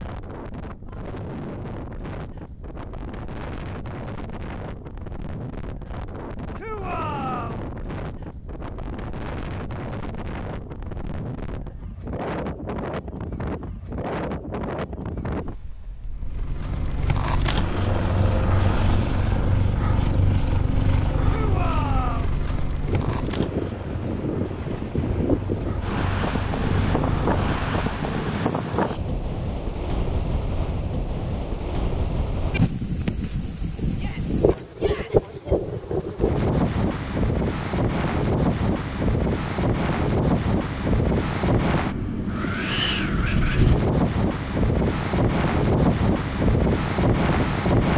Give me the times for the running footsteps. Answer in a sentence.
You can't hear the running footsteps here.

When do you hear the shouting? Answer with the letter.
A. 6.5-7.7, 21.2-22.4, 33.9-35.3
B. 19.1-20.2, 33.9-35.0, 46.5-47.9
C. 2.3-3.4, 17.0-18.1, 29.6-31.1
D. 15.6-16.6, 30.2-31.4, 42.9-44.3
A.